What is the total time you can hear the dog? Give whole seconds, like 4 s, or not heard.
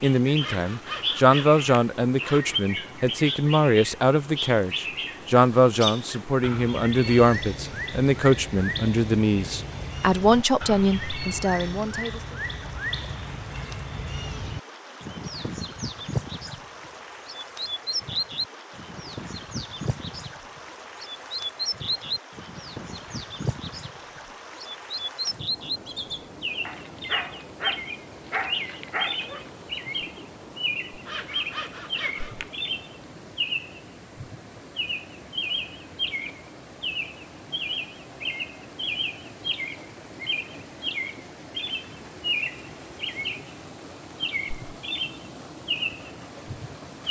3 s.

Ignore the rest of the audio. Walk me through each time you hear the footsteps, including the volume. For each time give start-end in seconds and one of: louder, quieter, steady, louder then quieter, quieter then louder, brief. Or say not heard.
not heard.